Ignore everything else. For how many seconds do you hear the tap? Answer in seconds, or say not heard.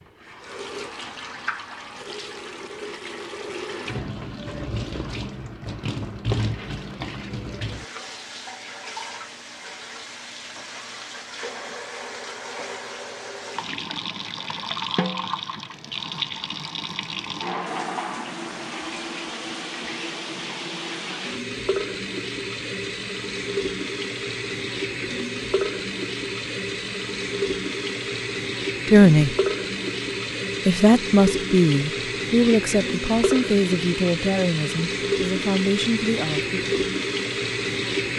38 s.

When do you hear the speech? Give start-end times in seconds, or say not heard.
28.9-29.4, 30.6-36.6.